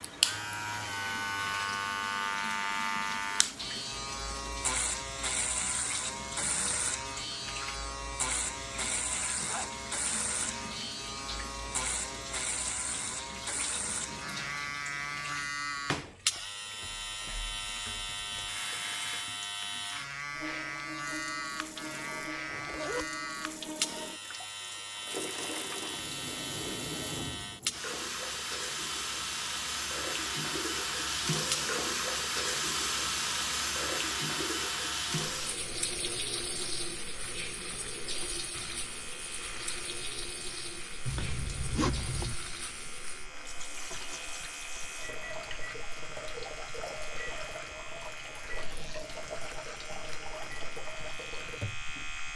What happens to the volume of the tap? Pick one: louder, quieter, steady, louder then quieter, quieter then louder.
louder then quieter.